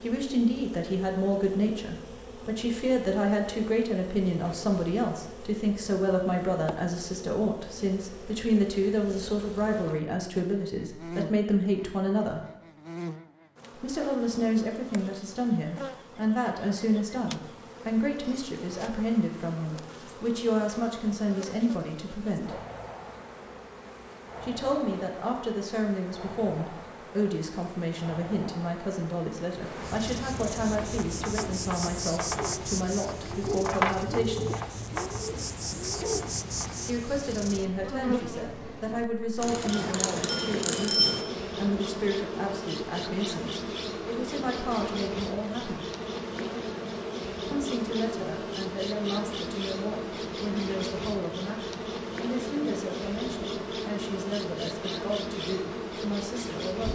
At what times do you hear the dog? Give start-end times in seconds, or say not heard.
not heard.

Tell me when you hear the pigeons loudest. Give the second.
34 s.